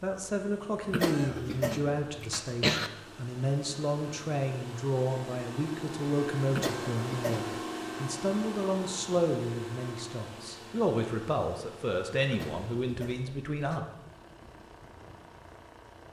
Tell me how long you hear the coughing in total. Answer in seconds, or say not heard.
5 s.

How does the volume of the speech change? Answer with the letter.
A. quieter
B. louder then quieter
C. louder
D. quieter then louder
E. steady
E.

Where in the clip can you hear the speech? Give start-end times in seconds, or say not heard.
0.0-13.8.